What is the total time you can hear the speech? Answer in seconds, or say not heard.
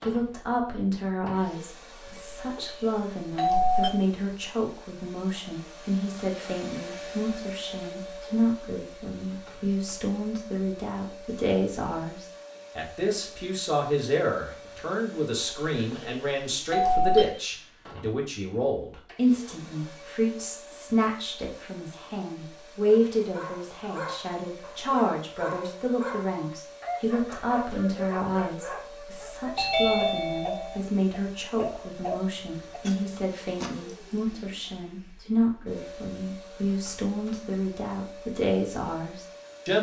40 s.